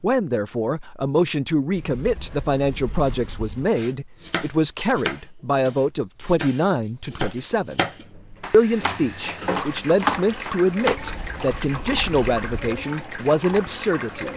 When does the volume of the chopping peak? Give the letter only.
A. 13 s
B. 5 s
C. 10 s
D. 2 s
C.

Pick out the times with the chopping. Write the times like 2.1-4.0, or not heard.
3.8-11.0.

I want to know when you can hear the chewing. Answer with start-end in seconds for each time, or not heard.
not heard.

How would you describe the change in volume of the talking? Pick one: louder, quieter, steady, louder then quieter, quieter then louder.
steady.